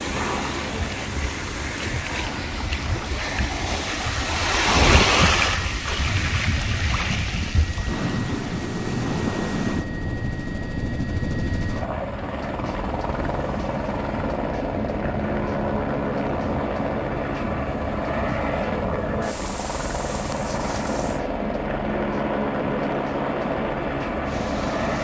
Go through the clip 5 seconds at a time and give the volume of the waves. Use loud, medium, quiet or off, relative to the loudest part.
loud, loud, medium, medium, medium.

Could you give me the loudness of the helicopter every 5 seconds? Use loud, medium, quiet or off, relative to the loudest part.
medium, medium, loud, loud, loud.